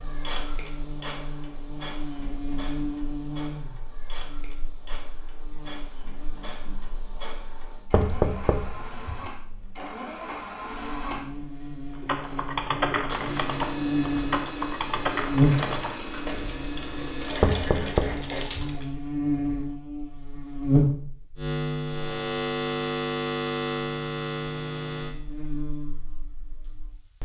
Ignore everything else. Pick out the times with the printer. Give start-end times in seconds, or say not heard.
0.0-18.8.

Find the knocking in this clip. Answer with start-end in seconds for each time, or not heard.
7.9-9.3, 17.4-18.8.